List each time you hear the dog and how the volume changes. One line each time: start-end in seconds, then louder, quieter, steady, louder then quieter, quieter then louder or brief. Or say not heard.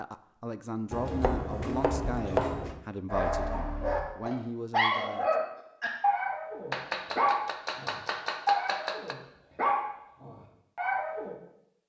3.1-11.3 steady.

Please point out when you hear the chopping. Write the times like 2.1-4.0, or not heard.
0.9-2.8, 6.7-9.2.